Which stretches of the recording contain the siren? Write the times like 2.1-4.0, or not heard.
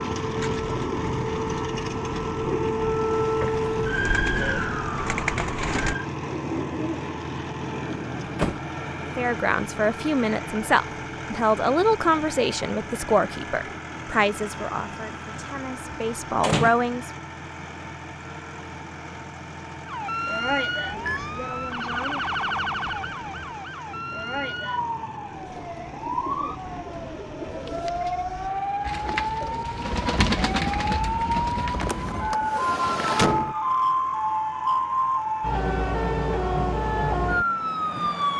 0.0-6.0, 19.9-38.3.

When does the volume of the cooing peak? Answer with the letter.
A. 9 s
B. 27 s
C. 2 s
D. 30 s
D.